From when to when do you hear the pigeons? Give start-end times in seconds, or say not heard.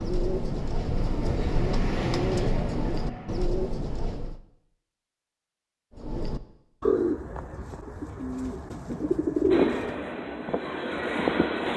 0.0-4.4, 6.0-9.9.